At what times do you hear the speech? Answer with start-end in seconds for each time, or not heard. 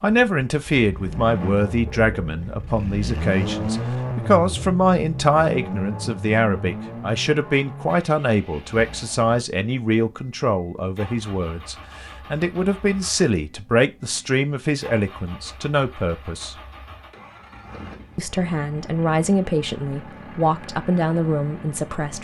0.0-16.6, 18.1-22.1.